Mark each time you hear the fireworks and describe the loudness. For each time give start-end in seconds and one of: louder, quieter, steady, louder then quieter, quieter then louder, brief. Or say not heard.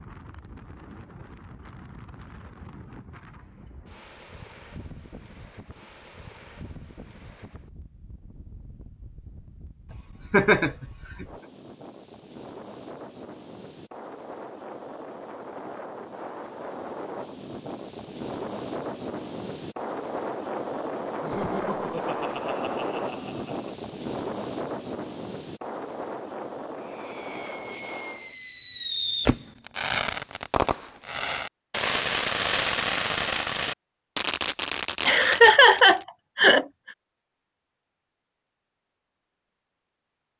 26.8-36.0 steady.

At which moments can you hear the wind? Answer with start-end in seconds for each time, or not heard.
0.0-28.4.